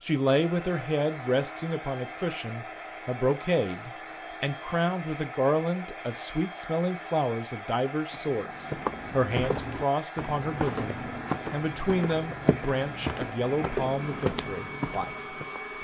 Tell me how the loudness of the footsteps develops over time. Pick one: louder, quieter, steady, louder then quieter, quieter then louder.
steady.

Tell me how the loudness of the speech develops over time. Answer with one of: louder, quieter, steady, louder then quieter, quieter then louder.
steady.